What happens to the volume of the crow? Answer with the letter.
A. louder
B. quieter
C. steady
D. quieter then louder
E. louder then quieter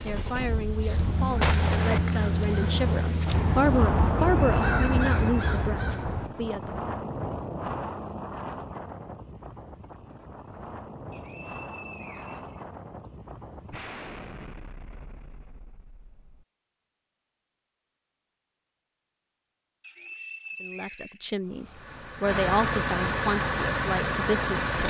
A.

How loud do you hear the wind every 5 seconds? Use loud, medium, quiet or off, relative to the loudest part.
loud, loud, medium, off, off.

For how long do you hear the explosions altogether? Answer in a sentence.
The explosions can be heard for 3 seconds in total.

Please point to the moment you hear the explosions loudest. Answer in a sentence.
The loudest moment of the explosions is at 2 seconds.